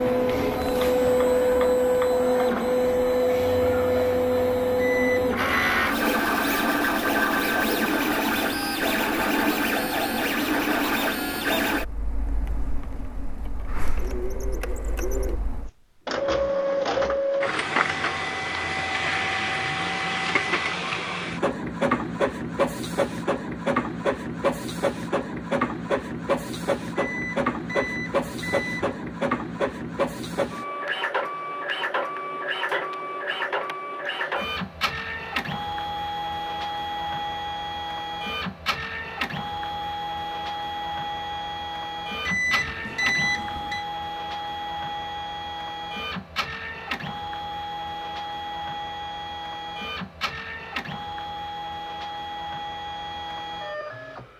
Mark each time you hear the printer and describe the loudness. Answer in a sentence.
You can hear the printer from 0.0 to 54.3 s, getting quieter.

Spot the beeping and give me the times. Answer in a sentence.
The beeping can be heard from 4.8 to 5.8 s, from 26.9 to 28.9 s and from 42.2 to 43.9 s.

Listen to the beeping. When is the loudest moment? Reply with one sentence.
The loudest moment of the beeping is at 43 seconds.